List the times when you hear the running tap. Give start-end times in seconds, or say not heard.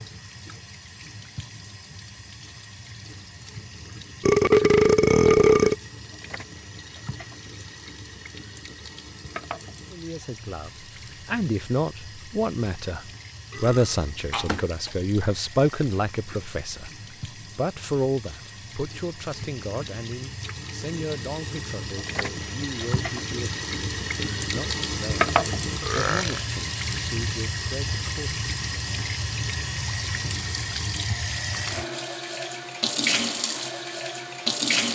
0.0-34.9.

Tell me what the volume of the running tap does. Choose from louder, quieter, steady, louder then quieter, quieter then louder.
louder.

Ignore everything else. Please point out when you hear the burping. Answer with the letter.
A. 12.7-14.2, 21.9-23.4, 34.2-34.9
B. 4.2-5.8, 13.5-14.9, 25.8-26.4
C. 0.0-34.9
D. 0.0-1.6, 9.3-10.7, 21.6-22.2
B.